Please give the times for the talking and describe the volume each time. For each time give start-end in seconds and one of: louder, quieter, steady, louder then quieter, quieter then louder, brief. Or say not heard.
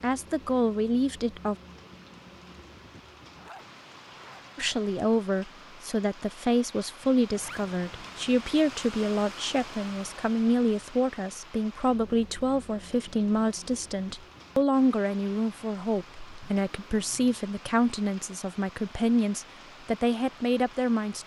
0.0-1.6 brief
4.5-21.2 steady.